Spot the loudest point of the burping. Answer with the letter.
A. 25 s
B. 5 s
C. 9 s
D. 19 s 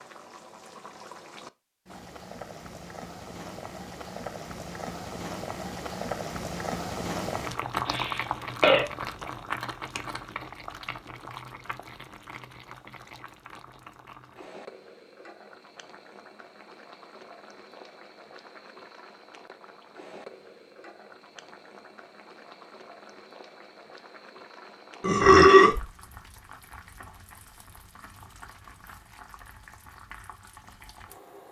A.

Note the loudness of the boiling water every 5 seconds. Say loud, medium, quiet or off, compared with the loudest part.
medium, loud, medium, quiet, quiet, quiet, quiet.